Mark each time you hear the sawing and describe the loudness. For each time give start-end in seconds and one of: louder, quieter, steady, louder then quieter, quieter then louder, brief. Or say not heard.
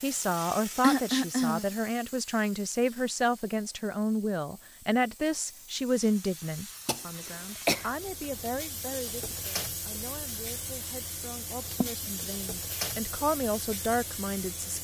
not heard.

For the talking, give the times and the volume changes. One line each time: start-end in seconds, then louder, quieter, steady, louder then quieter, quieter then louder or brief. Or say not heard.
0.0-14.7 quieter then louder.